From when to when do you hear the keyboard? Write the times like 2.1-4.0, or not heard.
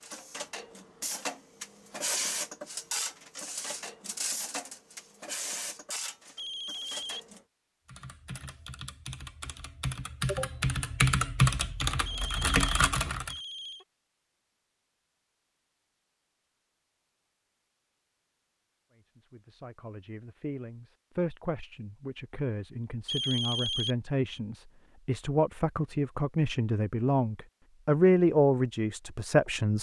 7.8-13.3.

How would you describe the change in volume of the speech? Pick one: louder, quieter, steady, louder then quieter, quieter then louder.
louder.